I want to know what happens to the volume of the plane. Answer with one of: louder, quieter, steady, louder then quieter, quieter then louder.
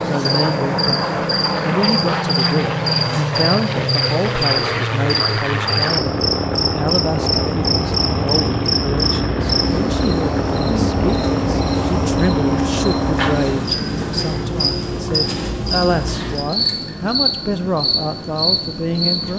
quieter.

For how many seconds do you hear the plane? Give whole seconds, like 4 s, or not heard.
19 s.